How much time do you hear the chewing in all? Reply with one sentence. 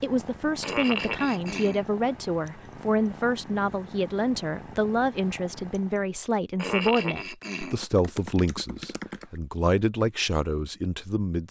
You can't hear the chewing here.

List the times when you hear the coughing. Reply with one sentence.
You can hear the coughing from 0.6 to 1.9 s and from 6.5 to 7.8 s.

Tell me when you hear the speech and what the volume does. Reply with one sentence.
The speech can be heard from 0.0 to 11.4 s, at a steady volume.